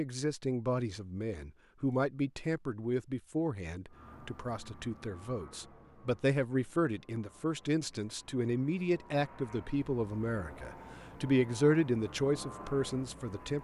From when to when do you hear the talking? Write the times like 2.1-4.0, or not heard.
0.0-13.5.